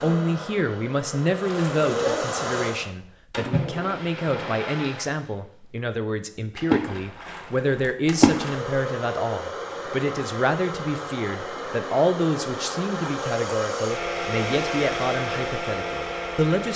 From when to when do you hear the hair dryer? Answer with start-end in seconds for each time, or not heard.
0.0-2.9, 8.2-16.7.